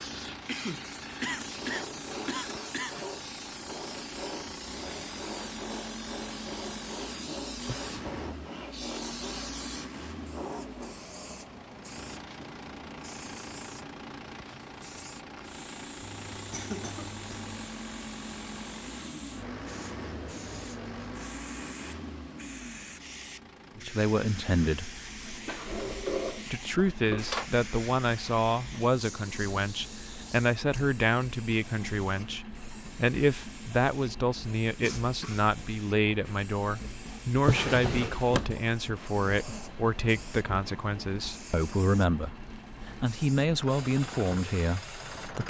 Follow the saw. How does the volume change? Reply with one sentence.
The loudness of the saw stays about the same.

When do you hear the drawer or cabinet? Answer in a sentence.
The drawer or cabinet can be heard from 7.8 to 8.3 s, from 25.4 to 27.4 s and from 37.4 to 38.6 s.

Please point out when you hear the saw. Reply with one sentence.
The saw can be heard from 1.5 to 11.0 s.